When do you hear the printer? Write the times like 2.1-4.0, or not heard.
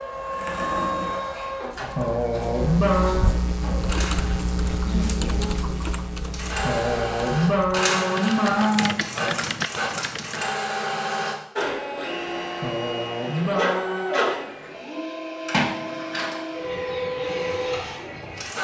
0.0-4.4, 6.2-18.5.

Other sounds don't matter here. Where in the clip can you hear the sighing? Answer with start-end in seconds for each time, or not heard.
1.9-3.3, 6.6-9.3, 12.6-14.0.